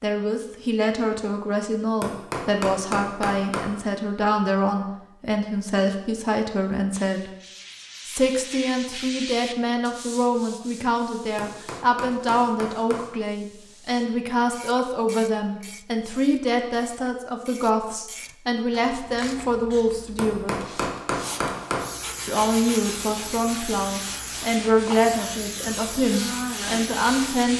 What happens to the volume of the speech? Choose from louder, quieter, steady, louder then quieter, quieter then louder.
steady.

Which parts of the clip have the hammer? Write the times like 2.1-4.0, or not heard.
2.0-3.7, 11.3-13.1, 20.1-21.9.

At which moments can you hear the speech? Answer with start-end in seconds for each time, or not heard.
0.0-7.3, 8.1-20.6, 22.2-27.5.